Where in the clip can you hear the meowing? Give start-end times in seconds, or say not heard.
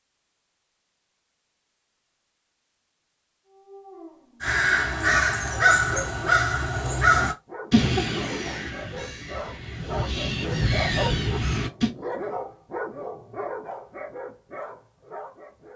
not heard.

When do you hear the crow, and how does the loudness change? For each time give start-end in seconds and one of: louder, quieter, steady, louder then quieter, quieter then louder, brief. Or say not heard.
4.4-11.9 quieter then louder.